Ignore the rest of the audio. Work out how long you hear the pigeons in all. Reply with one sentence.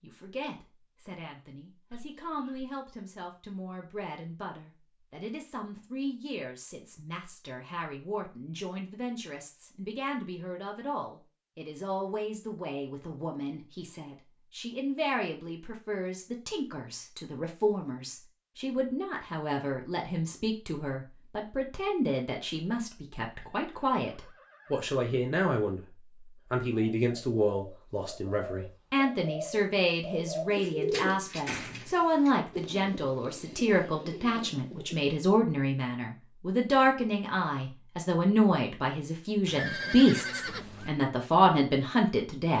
You can hear the pigeons for 8 seconds altogether.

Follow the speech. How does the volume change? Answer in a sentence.
The volume of the speech goes up.